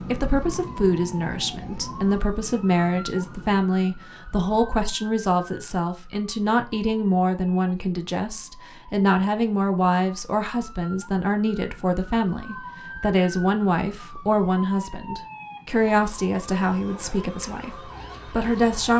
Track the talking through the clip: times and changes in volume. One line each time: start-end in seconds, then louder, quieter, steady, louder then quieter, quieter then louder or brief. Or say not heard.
0.0-18.9 steady.